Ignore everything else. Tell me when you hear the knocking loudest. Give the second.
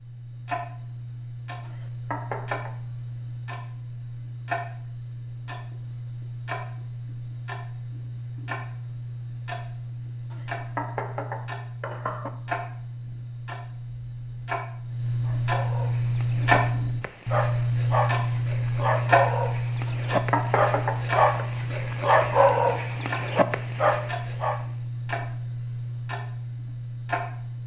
20 s.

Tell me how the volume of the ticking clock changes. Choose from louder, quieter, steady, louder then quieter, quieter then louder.
louder then quieter.